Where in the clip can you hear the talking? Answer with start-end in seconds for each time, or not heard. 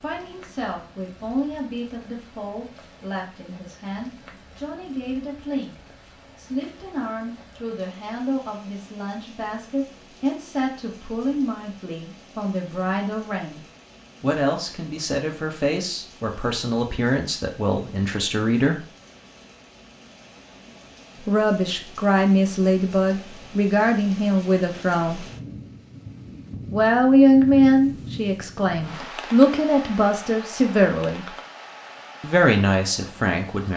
0.0-18.9, 21.2-25.2, 26.7-31.2, 32.2-33.7.